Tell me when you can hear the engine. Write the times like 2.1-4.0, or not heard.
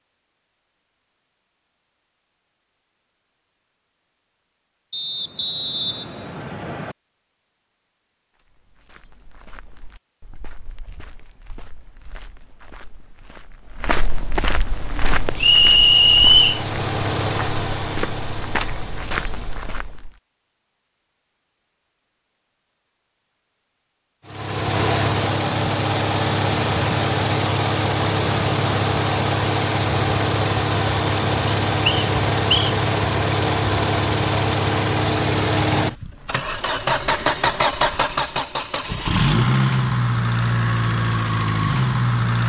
14.7-19.9, 24.2-42.4.